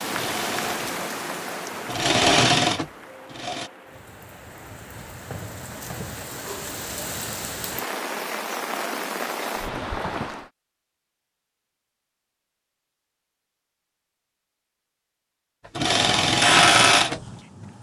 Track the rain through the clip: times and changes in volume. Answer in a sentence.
You can hear the rain from 0.0 to 10.5 s, getting quieter then louder.